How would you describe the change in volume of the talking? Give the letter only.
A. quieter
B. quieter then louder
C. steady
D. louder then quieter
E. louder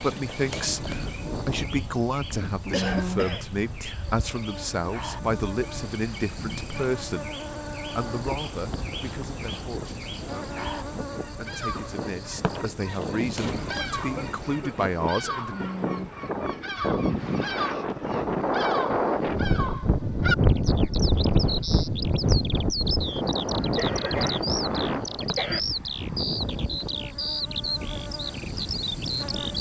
B.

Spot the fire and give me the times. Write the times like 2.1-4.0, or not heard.
not heard.